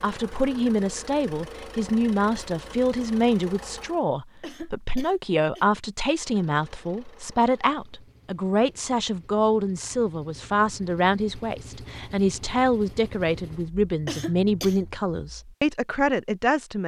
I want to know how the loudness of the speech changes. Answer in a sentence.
The volume of the speech stays about the same.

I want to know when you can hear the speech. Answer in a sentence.
The speech can be heard from 0.0 to 16.8 s.